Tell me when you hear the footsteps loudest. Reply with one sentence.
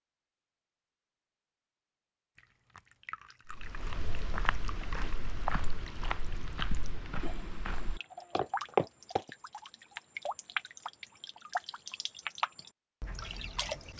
The loudest moment of the footsteps is at 9 seconds.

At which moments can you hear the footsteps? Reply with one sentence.
You can hear the footsteps from 3.5 to 9.3 s.